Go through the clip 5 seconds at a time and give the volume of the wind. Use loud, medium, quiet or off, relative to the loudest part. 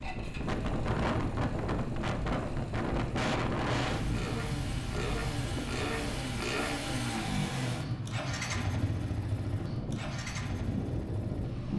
loud, medium, loud.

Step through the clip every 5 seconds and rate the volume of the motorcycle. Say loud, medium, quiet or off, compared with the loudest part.
medium, loud, medium.